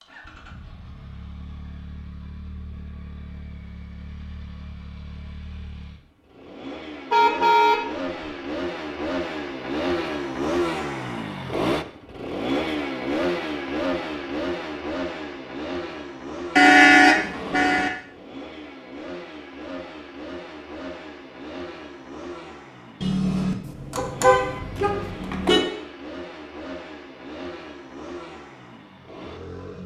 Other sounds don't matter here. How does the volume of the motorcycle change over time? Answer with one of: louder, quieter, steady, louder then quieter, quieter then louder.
louder then quieter.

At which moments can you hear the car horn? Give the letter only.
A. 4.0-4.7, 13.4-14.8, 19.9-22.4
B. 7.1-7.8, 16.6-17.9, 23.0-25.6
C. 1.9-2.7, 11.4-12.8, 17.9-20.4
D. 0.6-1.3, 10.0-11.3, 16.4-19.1
B.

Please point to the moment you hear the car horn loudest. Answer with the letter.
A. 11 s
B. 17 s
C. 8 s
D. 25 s
B.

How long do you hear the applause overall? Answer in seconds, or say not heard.
not heard.